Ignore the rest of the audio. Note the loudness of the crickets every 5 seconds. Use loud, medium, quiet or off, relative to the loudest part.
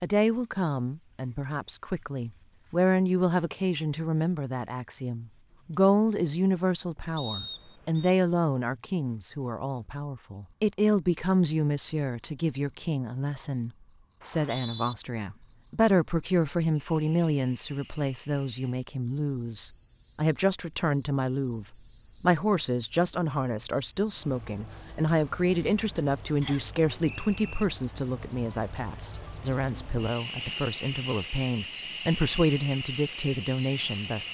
quiet, quiet, quiet, quiet, quiet, medium, loud.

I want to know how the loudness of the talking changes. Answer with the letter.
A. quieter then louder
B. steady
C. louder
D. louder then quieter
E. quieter
B.